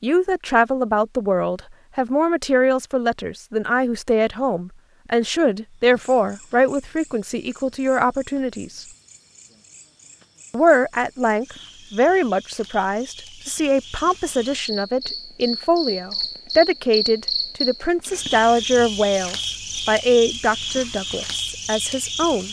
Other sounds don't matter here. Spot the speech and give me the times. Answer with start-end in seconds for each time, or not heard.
0.0-8.8, 10.5-22.4.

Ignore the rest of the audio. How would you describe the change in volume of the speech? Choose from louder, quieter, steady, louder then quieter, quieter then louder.
steady.